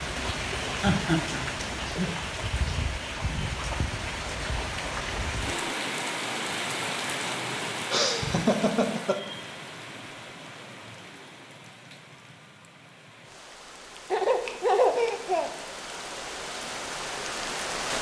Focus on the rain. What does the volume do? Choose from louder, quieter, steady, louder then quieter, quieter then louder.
quieter then louder.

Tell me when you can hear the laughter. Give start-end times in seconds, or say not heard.
0.8-2.2, 7.9-9.3, 14.1-15.5.